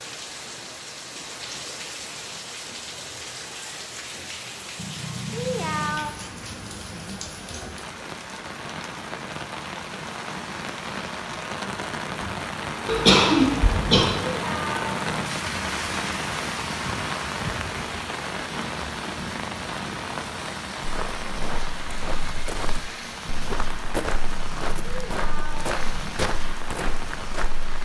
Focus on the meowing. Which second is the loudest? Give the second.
6 s.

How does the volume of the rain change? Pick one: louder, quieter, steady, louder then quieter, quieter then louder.
louder then quieter.